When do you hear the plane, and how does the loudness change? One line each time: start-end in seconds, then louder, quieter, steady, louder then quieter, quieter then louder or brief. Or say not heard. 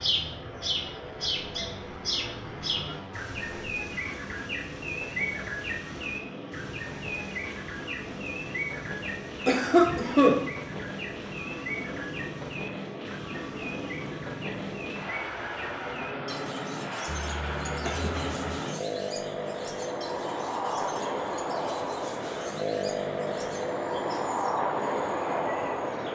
0.0-26.1 louder.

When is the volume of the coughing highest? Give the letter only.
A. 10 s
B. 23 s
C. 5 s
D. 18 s
A.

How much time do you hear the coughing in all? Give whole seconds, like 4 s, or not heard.
2 s.